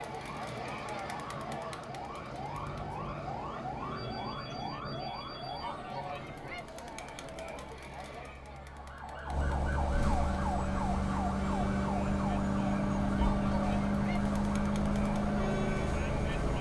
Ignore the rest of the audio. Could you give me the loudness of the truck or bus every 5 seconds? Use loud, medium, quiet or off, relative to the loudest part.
quiet, quiet, loud, loud.